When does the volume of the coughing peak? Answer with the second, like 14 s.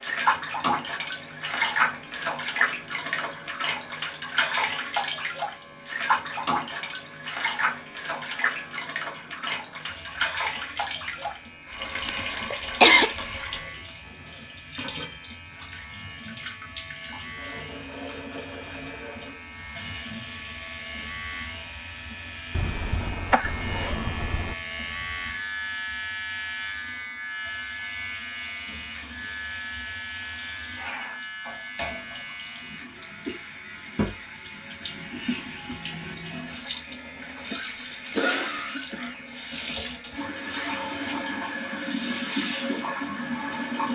13 s.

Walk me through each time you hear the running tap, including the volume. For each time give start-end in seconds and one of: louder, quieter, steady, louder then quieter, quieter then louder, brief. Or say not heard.
0.0-43.9 quieter then louder.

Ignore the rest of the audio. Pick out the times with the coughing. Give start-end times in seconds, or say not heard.
12.1-13.1, 22.6-24.6, 37.5-39.8.